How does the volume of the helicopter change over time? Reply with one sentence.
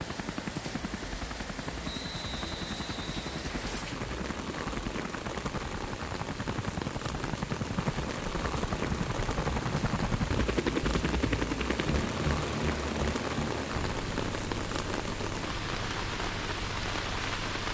The loudness of the helicopter goes up, then down.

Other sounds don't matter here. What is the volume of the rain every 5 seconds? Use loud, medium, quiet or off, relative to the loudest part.
medium, loud, loud, loud.